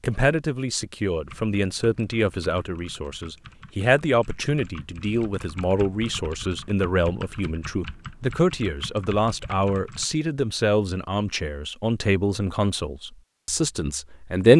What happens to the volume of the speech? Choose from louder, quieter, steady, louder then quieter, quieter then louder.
steady.